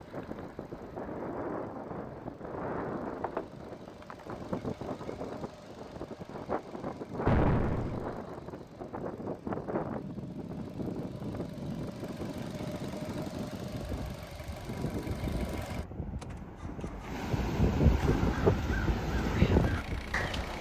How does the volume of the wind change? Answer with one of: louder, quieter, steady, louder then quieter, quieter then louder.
louder.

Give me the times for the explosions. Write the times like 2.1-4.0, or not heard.
7.2-8.2.